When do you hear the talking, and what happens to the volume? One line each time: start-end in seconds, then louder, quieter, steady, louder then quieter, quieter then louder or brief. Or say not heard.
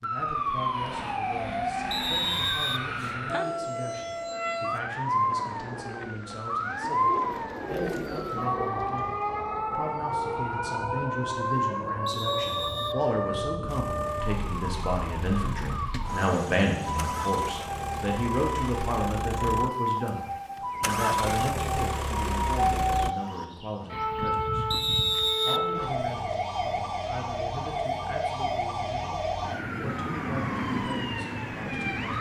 0.0-32.1 louder then quieter.